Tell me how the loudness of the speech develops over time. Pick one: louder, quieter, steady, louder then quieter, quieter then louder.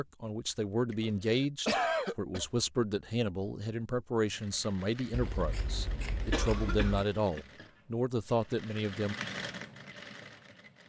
steady.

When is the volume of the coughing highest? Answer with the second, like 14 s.
2 s.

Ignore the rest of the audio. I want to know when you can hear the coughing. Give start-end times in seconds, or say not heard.
0.9-2.5, 6.3-7.4.